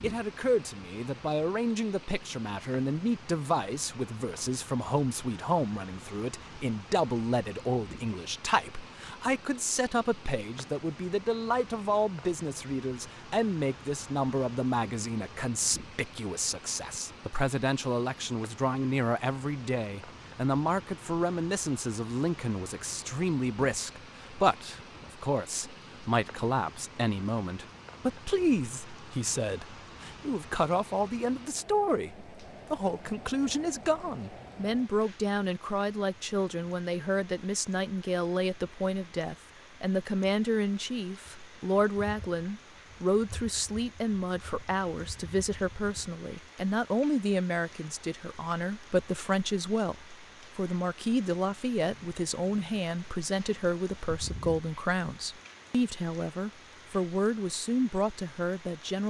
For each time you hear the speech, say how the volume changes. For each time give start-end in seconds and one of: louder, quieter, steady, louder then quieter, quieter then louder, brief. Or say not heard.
0.0-59.0 steady.